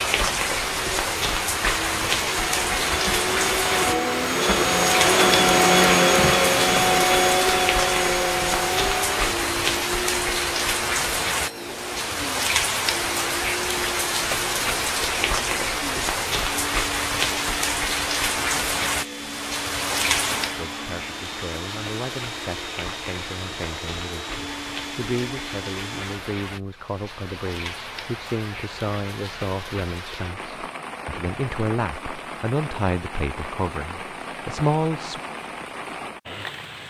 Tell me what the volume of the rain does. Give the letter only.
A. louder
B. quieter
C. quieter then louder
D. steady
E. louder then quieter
B.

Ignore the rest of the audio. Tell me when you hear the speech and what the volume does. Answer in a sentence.
The speech can be heard from 20.4 to 35.2 s, getting louder.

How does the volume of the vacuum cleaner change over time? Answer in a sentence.
The volume of the vacuum cleaner goes down.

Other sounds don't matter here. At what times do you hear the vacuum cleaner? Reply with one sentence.
You can hear the vacuum cleaner from 0.1 to 26.2 s.